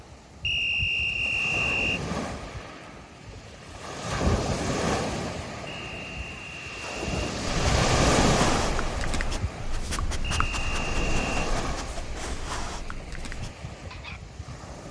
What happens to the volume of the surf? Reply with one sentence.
The loudness of the surf goes up, then down.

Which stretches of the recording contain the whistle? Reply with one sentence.
The whistle can be heard from 0.4 to 2.0 s, from 5.7 to 7.3 s and from 10.2 to 11.5 s.